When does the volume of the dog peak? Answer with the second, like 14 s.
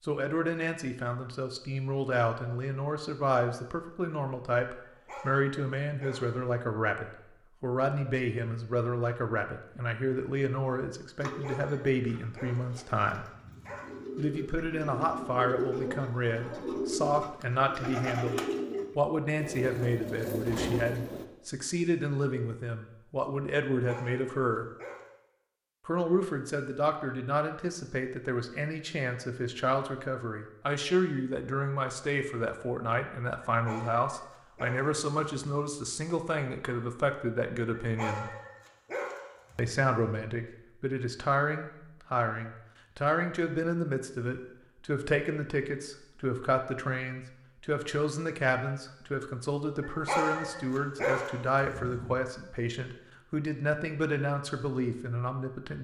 50 s.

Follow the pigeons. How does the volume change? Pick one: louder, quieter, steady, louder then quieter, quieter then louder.
louder.